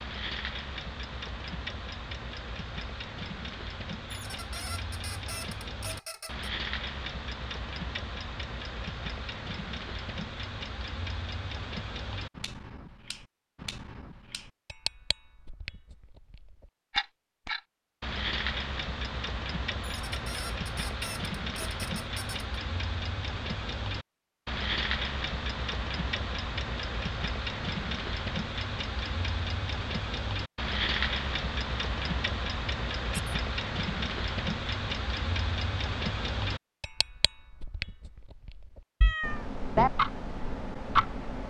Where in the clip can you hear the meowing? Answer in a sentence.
The meowing can be heard from 39.0 to 39.9 s.